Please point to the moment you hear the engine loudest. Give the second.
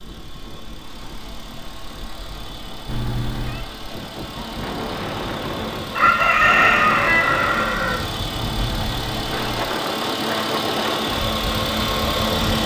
12 s.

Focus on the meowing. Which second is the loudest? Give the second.
3 s.